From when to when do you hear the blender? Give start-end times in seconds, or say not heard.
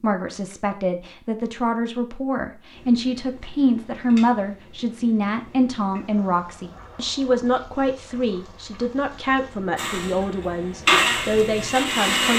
9.8-12.3.